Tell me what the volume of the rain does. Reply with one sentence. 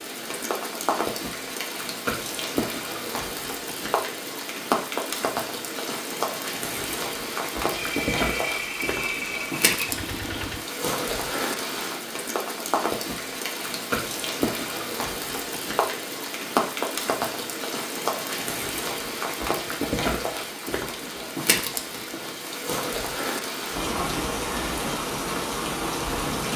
The volume of the rain stays about the same.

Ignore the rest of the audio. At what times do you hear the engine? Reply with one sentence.
The engine can be heard from 7.7 to 10.7 s.